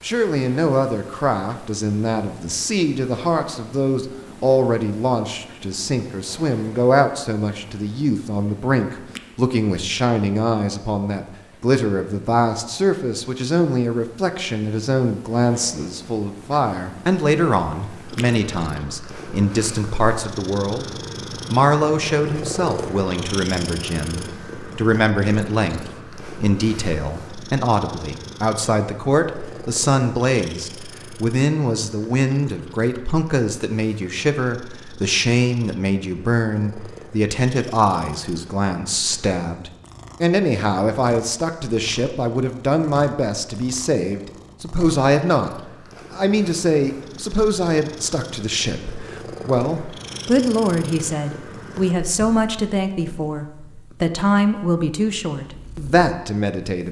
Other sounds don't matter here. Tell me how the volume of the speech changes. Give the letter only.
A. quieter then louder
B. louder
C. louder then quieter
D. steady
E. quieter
D.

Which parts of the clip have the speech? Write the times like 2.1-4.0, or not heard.
0.0-20.9, 21.5-56.8.